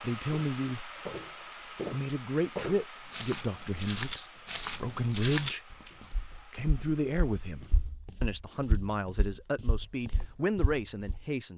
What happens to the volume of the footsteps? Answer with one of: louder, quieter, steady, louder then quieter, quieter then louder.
quieter.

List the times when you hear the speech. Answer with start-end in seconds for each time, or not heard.
0.0-0.9, 1.9-5.7, 6.5-11.5.